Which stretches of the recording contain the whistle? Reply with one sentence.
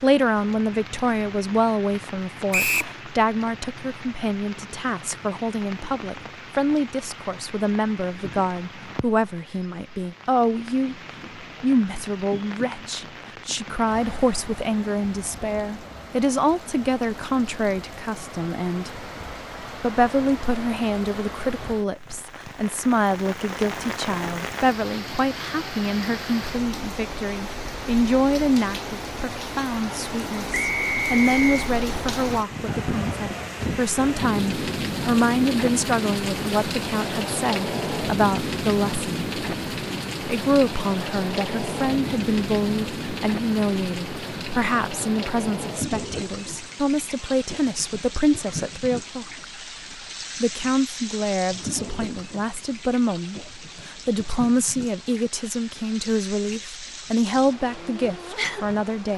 The whistle can be heard from 2.5 to 3.0 s and from 30.5 to 31.7 s.